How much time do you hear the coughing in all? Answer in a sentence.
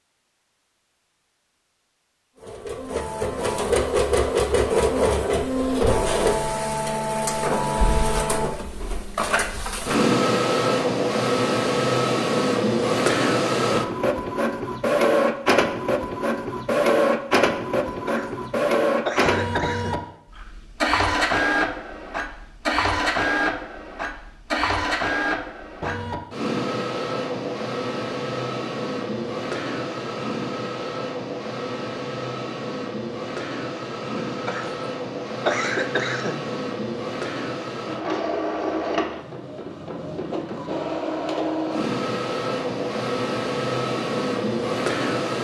The coughing can be heard for 4 seconds in total.